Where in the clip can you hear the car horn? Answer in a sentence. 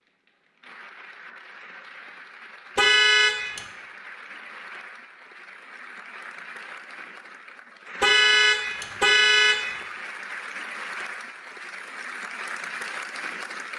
The car horn can be heard from 2.8 to 3.6 s and from 8.0 to 9.8 s.